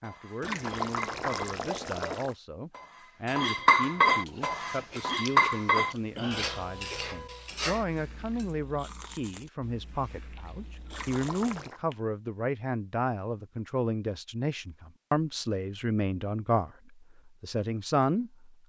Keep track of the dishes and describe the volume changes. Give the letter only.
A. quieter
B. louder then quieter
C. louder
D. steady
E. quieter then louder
B.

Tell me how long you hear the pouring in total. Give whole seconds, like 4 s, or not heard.
3 s.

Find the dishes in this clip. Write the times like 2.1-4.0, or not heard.
0.0-8.5.